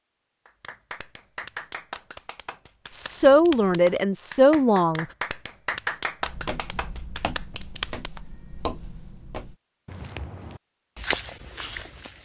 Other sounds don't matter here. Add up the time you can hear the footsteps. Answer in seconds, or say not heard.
6 s.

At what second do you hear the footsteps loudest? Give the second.
11 s.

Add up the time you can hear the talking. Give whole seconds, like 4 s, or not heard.
2 s.